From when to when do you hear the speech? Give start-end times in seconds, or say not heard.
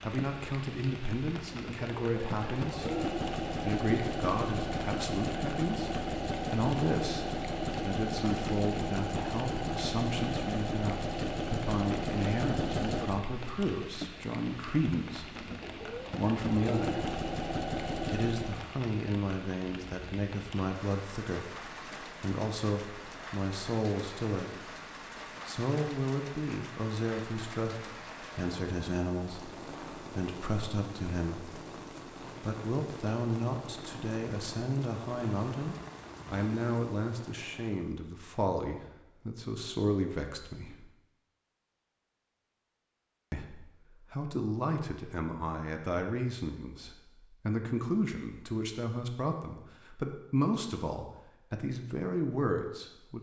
0.1-17.1, 18.1-24.6, 25.4-31.6, 32.4-40.9, 43.3-53.1.